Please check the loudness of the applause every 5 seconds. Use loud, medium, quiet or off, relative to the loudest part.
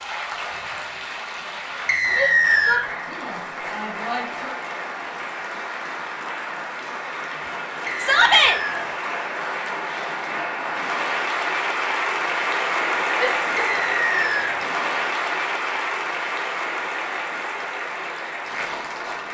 medium, medium, loud, loud.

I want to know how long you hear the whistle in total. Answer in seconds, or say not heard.
3 s.